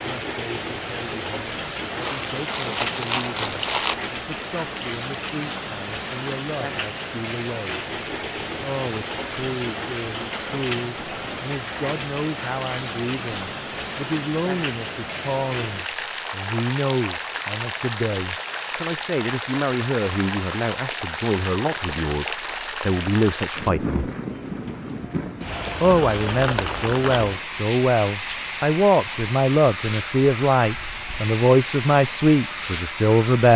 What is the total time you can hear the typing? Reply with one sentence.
The typing can't be heard in this clip.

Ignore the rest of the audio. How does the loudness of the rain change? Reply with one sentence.
The volume of the rain stays about the same.